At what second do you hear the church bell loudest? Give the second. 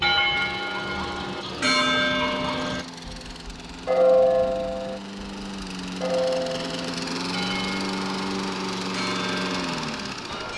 4 s.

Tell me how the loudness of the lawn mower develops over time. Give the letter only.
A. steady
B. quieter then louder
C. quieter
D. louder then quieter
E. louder
E.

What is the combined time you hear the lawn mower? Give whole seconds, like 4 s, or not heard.
10 s.